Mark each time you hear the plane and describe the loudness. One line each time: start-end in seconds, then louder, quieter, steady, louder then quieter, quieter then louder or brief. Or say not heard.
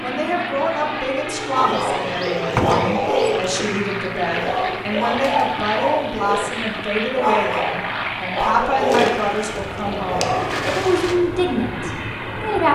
0.0-12.7 steady.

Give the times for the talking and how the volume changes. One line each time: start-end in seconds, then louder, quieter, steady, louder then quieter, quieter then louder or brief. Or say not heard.
0.0-12.7 steady.